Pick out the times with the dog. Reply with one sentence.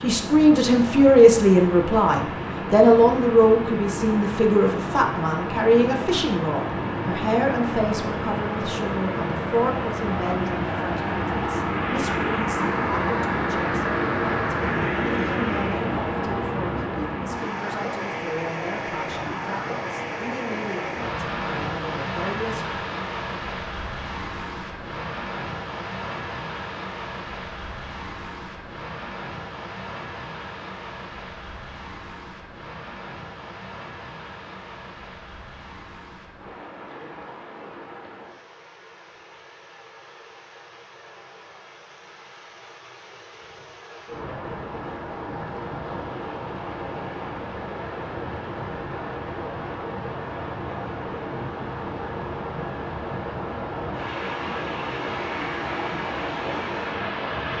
You can't hear the dog here.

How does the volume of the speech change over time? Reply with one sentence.
The volume of the speech goes down.